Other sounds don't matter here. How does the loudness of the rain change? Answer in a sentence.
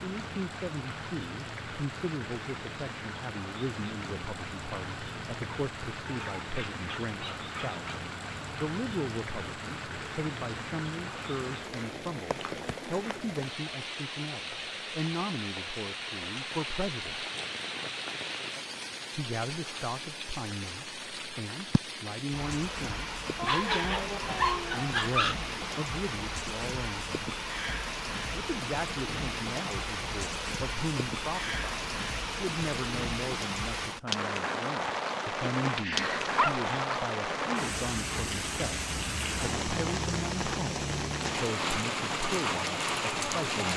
The loudness of the rain goes up.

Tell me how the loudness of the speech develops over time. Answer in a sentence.
The volume of the speech stays about the same.